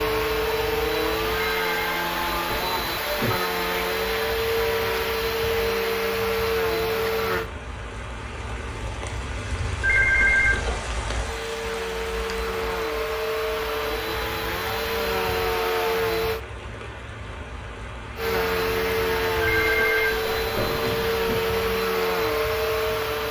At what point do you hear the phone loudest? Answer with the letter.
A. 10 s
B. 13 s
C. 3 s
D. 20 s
A.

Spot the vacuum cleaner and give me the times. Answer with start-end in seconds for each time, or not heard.
0.0-7.5, 11.2-16.4, 18.1-23.2.